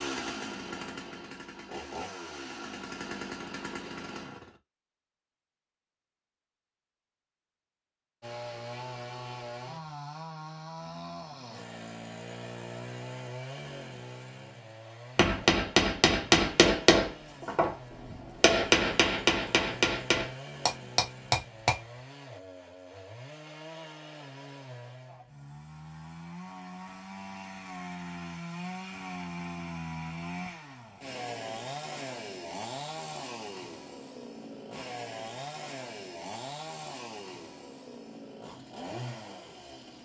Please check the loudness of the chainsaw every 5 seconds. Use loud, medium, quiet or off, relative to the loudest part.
loud, loud, loud, medium, medium, loud, loud, loud.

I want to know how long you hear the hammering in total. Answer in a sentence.
The hammering can be heard for 7 seconds in total.